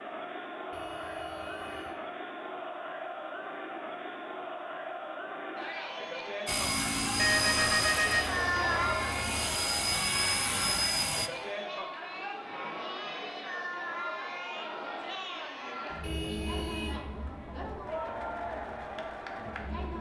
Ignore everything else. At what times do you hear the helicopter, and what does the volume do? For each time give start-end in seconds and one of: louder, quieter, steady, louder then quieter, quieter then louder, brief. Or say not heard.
6.5-11.3 quieter then louder.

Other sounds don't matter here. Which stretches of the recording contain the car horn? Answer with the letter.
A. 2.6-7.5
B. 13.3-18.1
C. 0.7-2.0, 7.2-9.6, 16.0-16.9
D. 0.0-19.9
C.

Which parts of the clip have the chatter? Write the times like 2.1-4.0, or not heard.
0.0-19.9.